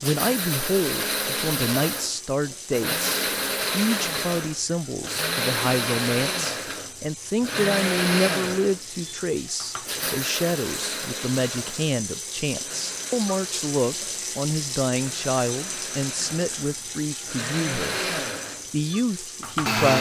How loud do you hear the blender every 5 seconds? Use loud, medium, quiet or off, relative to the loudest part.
loud, loud, medium, loud.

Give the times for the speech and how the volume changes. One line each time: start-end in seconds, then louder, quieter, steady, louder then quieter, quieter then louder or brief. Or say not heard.
0.0-19.9 steady.